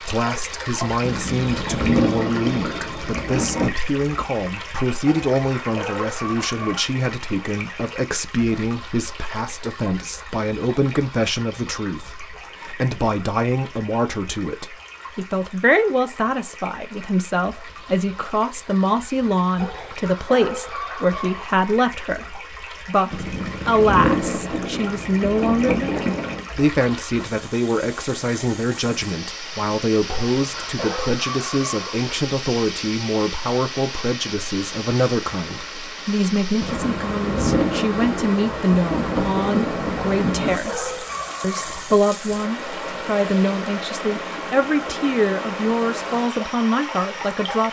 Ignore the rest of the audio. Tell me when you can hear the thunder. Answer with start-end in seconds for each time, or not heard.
1.0-3.8, 23.1-26.4, 36.5-40.6.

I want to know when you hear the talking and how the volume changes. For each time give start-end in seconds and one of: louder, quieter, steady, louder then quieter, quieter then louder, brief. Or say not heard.
0.0-47.6 steady.